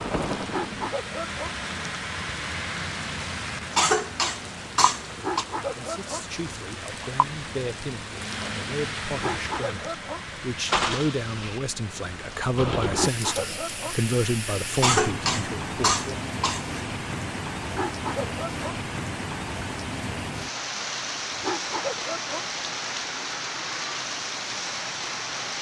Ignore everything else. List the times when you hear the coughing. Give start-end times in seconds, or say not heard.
3.7-5.5, 14.8-16.8.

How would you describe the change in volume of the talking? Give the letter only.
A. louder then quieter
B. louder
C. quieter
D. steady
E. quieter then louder
B.